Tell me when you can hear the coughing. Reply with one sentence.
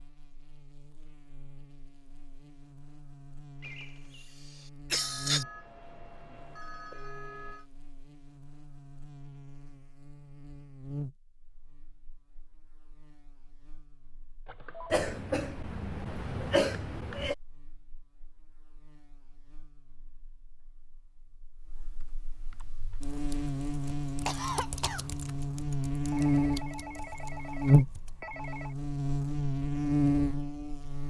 The coughing can be heard from 3.6 to 5.5 s, from 14.9 to 17.4 s and from 24.2 to 25.1 s.